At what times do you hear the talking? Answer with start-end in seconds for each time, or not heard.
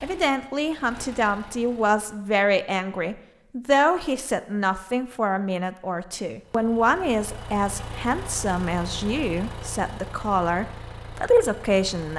0.0-12.1.